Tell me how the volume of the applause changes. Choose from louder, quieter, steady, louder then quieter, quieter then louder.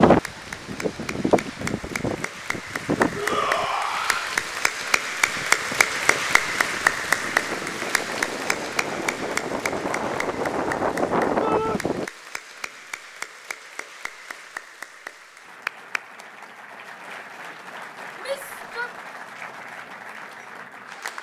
louder then quieter.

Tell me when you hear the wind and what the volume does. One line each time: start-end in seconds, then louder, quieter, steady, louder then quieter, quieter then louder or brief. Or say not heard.
0.0-12.1 quieter then louder.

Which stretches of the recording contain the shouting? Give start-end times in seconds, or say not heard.
3.1-4.3, 11.4-11.8, 18.1-18.9.